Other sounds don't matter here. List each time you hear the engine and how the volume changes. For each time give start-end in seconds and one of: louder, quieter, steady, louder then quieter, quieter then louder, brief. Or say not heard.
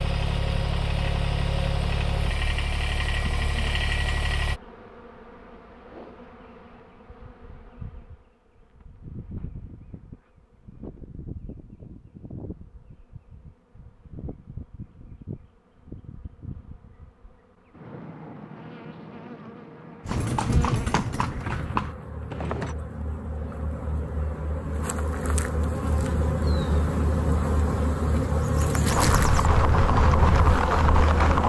0.0-4.6 steady.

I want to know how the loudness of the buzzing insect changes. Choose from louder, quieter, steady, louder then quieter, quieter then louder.
louder.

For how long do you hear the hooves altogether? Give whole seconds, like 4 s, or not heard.
5 s.